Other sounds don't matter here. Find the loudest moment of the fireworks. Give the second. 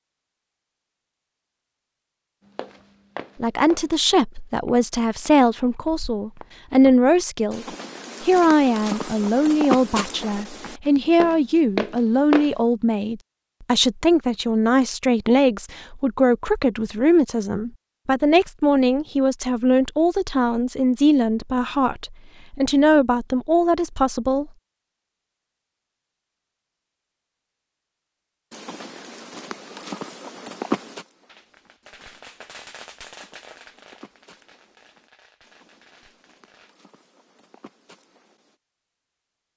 33 s.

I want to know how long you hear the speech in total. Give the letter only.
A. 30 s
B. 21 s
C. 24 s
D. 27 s
B.